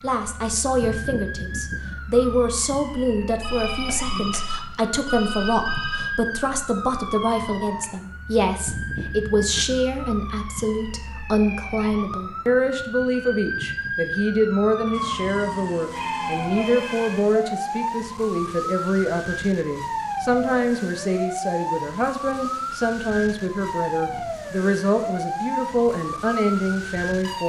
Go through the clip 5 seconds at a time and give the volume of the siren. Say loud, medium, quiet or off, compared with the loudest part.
medium, loud, loud, loud, loud, loud.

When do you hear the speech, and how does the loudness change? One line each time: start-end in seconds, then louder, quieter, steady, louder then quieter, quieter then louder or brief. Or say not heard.
0.0-27.4 steady.